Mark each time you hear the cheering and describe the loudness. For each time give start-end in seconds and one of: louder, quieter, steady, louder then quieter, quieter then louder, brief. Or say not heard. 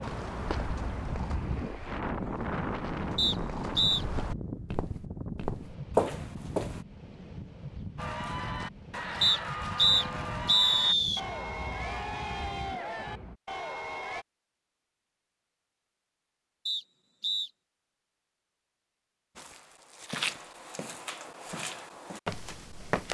8.0-14.2 steady.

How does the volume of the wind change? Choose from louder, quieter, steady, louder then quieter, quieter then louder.
quieter.